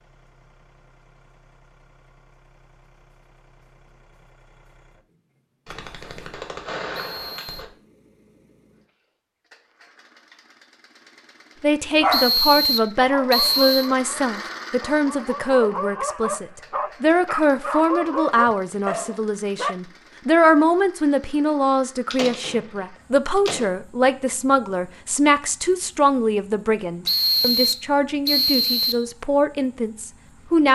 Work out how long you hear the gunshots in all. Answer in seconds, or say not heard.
4 s.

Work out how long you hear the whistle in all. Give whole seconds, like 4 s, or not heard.
4 s.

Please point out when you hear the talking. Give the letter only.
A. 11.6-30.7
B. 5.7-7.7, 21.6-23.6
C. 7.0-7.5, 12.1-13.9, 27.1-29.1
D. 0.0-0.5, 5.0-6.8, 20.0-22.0
A.